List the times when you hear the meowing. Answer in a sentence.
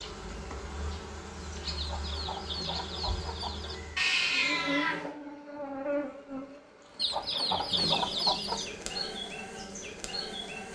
The meowing can be heard from 4.0 to 5.1 s.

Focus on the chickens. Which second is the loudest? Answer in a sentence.
The loudest moment of the chickens is at 8 seconds.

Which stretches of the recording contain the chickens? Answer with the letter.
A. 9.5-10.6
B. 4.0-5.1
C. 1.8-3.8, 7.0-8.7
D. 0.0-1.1
C.